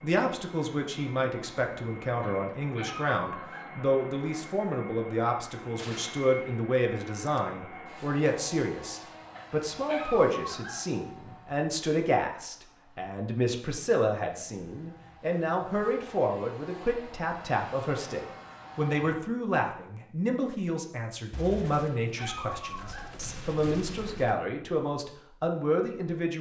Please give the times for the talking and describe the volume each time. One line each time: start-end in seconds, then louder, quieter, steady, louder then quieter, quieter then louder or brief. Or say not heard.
0.0-26.3 steady.